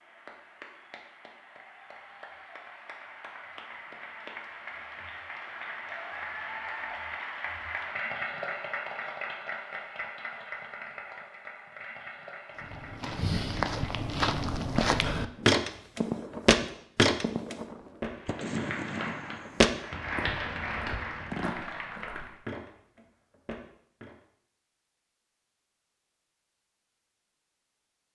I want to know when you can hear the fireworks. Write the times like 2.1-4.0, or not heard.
15.3-21.6.